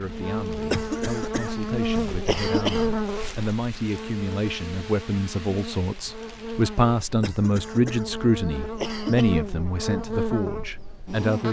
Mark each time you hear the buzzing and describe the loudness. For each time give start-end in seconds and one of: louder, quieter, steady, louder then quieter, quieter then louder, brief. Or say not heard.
0.0-11.4 quieter then louder.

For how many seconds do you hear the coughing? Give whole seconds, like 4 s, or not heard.
5 s.